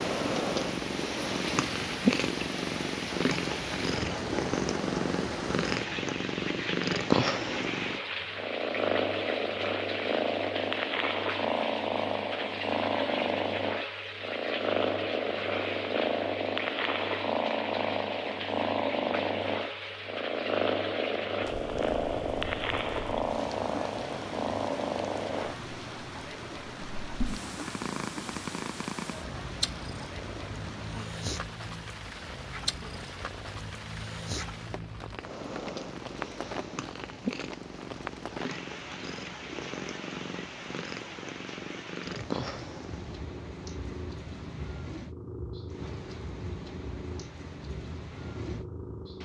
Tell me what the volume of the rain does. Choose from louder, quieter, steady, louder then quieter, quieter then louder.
quieter.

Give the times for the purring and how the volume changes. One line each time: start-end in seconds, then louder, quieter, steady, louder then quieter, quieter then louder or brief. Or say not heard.
0.0-49.2 quieter.